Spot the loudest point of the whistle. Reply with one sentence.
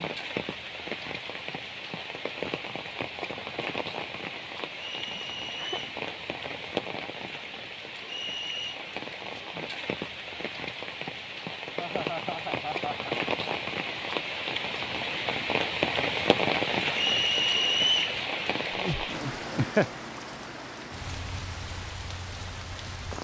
The loudest moment of the whistle is at 18 seconds.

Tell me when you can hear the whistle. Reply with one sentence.
The whistle can be heard from 4.8 to 5.8 s, from 8.1 to 8.8 s and from 16.9 to 18.1 s.